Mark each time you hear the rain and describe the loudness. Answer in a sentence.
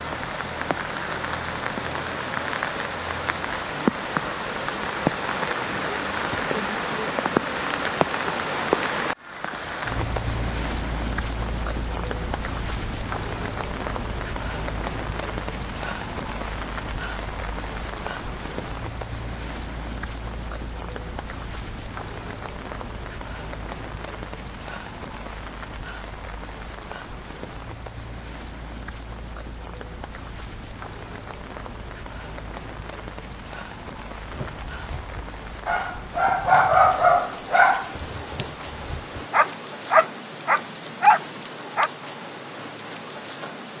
The rain can be heard from 0.0 to 43.7 s, getting quieter.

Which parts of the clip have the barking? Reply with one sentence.
The barking can be heard from 34.3 to 41.9 s.